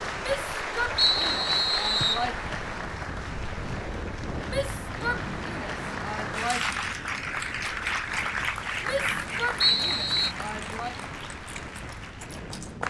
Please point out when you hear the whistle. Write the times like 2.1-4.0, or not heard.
0.9-2.2, 9.6-10.3.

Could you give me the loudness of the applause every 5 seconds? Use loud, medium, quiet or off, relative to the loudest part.
loud, loud, medium.